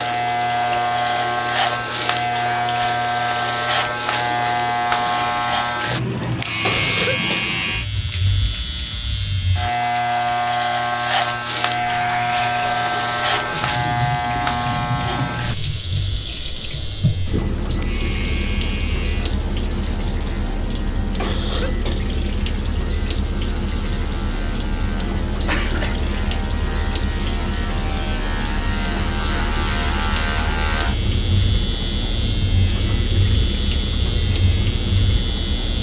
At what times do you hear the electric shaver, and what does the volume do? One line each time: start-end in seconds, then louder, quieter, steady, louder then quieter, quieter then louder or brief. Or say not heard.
0.0-35.7 quieter then louder.